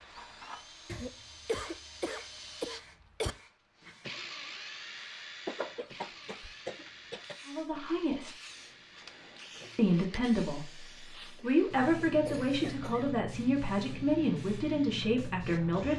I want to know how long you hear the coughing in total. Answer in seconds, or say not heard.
6 s.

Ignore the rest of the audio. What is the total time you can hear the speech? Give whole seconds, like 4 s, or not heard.
7 s.